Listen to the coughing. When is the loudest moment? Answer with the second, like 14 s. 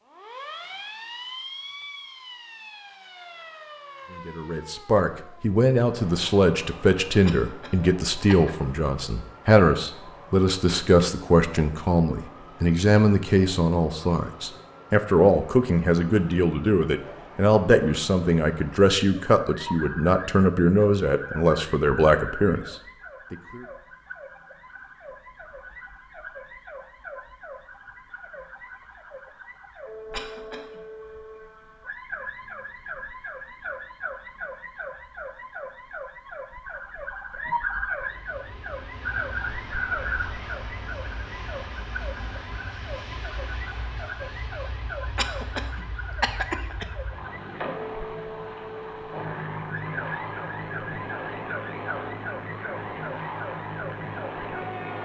46 s.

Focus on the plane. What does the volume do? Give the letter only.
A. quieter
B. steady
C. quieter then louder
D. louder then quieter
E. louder
E.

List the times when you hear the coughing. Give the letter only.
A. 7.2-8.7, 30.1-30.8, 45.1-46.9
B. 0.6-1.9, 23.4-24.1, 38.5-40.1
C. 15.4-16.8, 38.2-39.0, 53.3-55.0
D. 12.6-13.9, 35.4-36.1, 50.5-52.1
A.